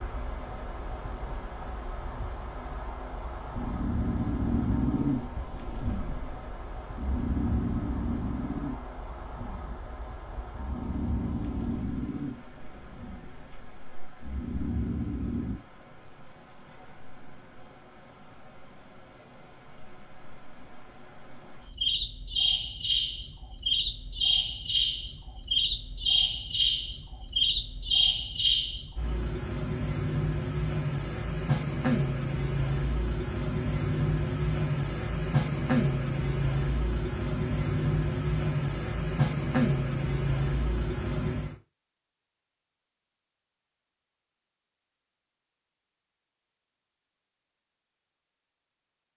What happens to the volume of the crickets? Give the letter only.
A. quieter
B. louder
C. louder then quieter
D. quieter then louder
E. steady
B.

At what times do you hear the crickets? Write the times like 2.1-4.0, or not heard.
0.0-41.5.